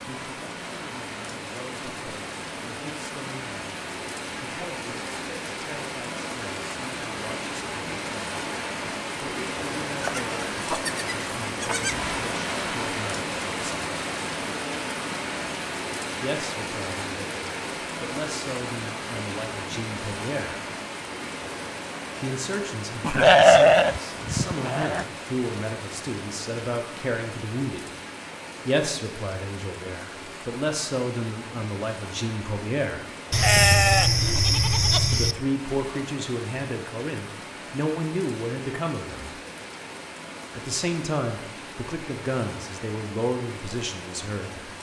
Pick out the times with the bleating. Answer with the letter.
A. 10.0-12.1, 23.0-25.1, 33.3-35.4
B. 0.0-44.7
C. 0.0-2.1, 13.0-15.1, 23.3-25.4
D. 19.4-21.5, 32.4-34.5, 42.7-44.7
A.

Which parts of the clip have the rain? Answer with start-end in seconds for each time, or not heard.
0.0-44.7.